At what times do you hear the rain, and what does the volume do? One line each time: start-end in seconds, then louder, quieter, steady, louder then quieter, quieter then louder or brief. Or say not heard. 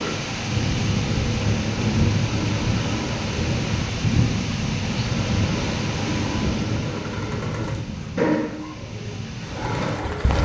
0.0-10.4 quieter.